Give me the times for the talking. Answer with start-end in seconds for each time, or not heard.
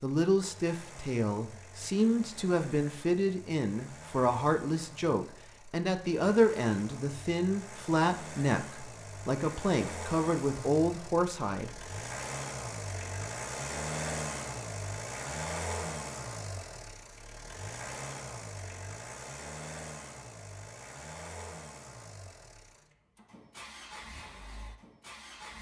0.0-11.8.